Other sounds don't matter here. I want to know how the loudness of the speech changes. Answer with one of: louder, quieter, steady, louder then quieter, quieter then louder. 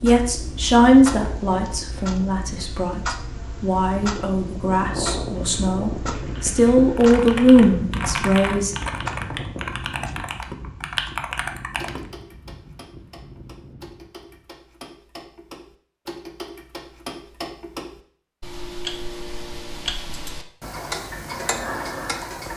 quieter then louder.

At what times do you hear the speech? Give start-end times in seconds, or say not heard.
0.0-8.8.